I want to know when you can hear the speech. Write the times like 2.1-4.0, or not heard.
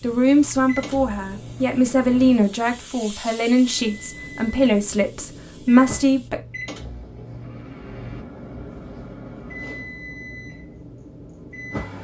0.0-6.4.